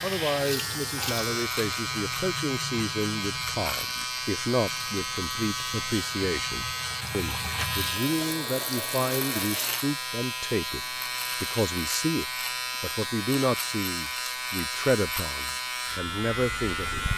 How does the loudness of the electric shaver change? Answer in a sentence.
The loudness of the electric shaver stays about the same.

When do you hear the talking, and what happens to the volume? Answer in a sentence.
You can hear the talking from 0.0 to 17.1 s, at a steady volume.